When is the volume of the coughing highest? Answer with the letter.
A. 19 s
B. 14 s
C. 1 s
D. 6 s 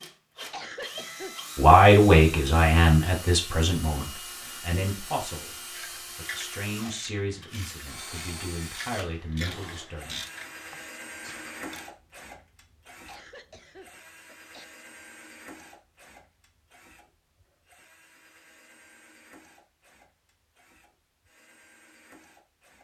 C.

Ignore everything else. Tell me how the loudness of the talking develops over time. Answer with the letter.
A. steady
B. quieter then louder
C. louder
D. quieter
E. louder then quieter
D.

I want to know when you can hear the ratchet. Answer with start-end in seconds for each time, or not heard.
5.7-11.8.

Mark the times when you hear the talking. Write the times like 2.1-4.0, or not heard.
1.6-10.2.